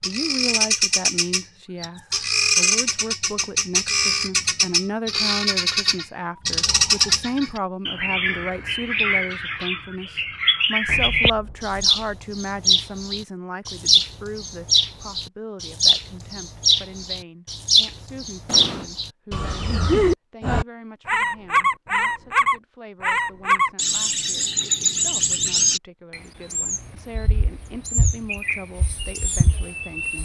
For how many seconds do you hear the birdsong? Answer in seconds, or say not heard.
30 s.